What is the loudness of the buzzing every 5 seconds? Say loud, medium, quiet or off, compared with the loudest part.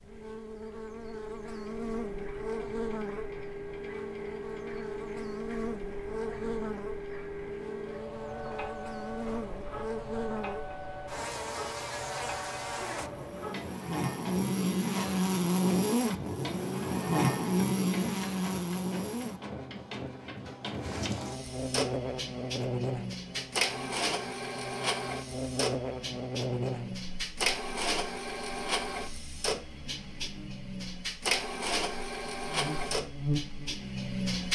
medium, medium, medium, loud, medium, medium, medium.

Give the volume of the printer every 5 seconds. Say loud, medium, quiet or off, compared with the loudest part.
medium, medium, medium, medium, loud, loud, loud.